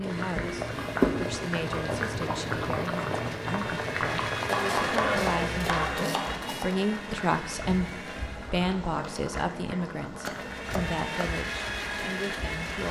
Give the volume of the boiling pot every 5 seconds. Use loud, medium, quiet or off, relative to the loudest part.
loud, medium, medium.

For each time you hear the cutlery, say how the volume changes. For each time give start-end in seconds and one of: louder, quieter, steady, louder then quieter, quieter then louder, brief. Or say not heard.
not heard.